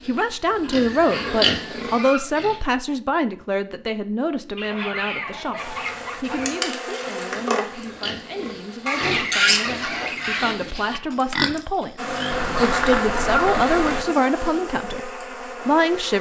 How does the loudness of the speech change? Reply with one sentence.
The loudness of the speech goes down, then up.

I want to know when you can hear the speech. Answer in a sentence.
You can hear the speech from 0.1 to 16.1 s.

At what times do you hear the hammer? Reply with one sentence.
The hammer can't be heard in this clip.